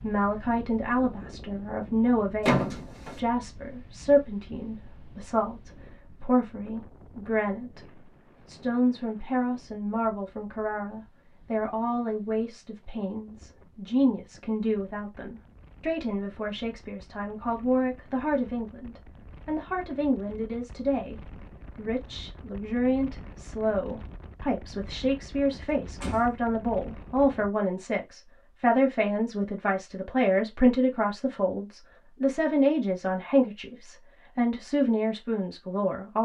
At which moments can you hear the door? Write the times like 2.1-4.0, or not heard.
2.5-3.2, 25.5-26.4.